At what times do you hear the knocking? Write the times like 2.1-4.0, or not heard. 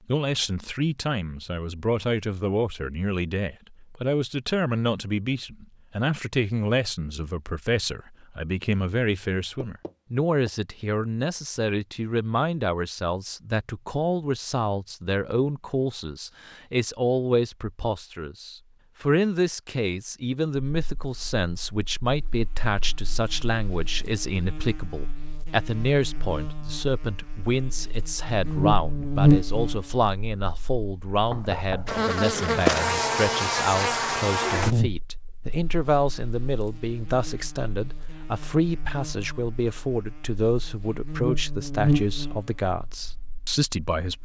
9.7-10.5, 31.2-32.0.